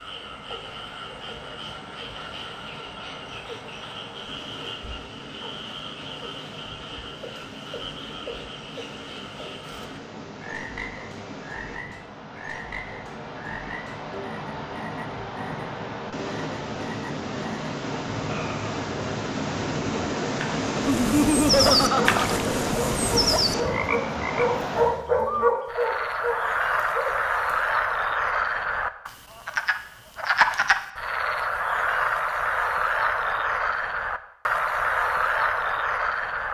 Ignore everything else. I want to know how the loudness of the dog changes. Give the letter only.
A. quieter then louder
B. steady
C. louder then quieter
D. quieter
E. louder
C.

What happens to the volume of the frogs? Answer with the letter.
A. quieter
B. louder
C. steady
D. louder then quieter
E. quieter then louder
B.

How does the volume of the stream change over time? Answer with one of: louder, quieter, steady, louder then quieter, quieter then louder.
louder.